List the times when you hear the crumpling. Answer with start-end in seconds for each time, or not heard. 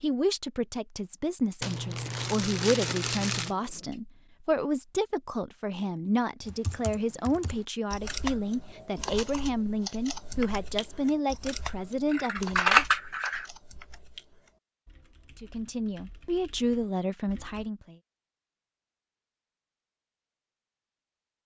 1.6-3.5.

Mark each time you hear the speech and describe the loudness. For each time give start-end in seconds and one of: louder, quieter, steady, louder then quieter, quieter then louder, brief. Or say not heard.
0.0-12.8 steady
15.4-17.9 brief.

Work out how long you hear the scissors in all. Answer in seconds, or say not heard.
2 s.